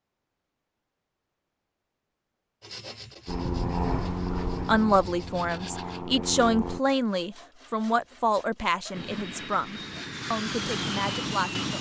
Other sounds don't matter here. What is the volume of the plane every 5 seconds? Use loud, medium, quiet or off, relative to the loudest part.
loud, medium, loud.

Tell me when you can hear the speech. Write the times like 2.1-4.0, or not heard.
4.7-11.7.